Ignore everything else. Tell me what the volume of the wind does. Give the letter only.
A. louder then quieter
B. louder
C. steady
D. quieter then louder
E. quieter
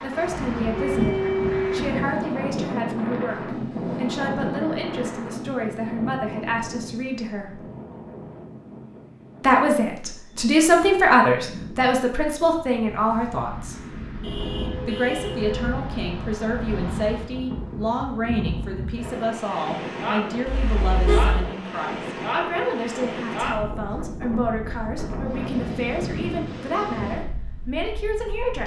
D.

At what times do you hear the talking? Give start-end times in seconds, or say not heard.
0.0-7.6, 9.4-13.8, 14.8-28.6.